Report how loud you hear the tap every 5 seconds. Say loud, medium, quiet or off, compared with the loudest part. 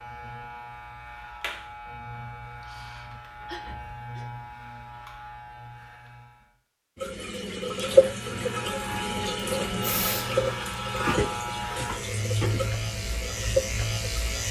off, loud, medium.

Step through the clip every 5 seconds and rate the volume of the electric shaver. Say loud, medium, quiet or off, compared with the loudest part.
medium, medium, loud.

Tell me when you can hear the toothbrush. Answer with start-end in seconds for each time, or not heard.
not heard.